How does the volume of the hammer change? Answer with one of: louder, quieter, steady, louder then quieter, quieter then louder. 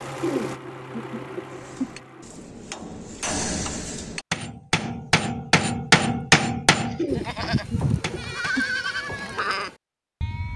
louder then quieter.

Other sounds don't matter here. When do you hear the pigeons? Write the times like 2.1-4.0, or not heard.
0.2-1.9, 7.0-8.7.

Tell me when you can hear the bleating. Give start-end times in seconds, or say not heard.
7.1-10.5.